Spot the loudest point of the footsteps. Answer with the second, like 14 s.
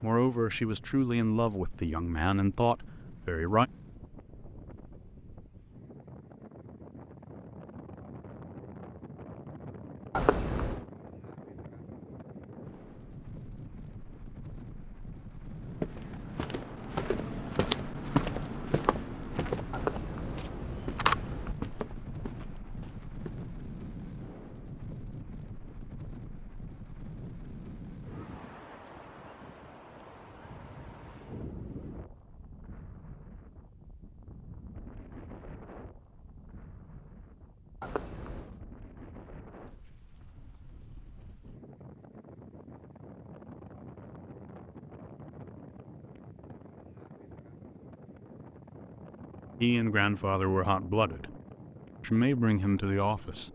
18 s.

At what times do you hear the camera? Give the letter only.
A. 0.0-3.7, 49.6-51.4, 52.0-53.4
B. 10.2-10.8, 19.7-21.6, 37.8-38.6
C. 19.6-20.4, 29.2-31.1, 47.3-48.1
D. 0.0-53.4
B.